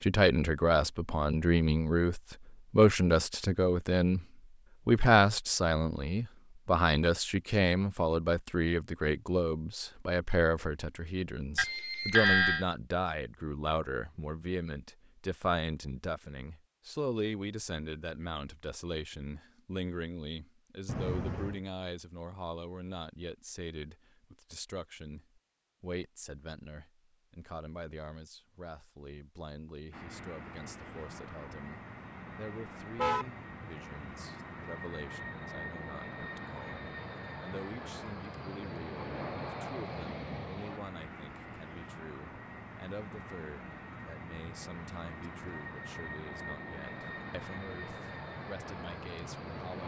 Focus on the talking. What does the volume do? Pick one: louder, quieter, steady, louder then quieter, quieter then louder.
quieter.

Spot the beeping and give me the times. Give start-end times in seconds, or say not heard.
11.6-12.7.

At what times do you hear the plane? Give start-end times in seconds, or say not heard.
29.9-49.8.